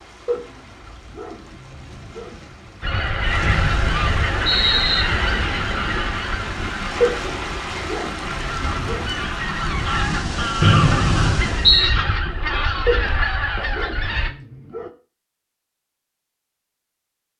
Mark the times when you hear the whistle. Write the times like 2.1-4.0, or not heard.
3.4-5.0, 10.6-11.9.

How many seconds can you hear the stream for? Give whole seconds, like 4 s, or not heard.
12 s.